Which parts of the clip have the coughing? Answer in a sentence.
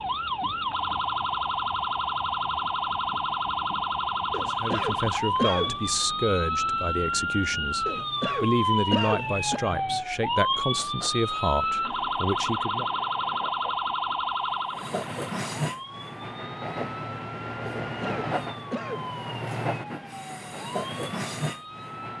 The coughing can be heard from 4.3 to 5.8 s, from 7.8 to 9.6 s and from 17.8 to 19.1 s.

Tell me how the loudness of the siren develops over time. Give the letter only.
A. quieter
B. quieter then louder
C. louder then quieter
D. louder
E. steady
A.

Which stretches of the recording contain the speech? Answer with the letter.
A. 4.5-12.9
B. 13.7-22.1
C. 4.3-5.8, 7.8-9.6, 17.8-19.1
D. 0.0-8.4
A.